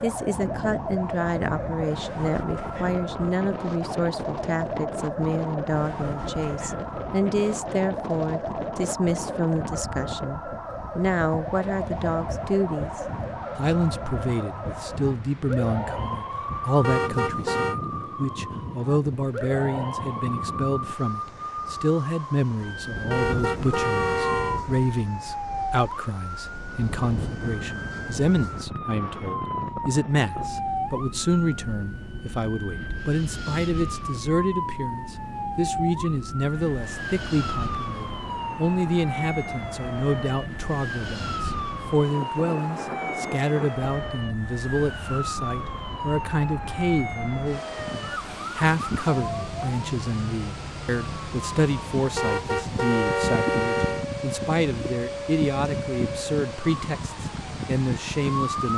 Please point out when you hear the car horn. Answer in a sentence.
You can hear the car horn from 16.8 to 17.8 s, from 23.1 to 24.6 s and from 52.1 to 54.0 s.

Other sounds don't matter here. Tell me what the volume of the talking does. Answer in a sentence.
The volume of the talking stays about the same.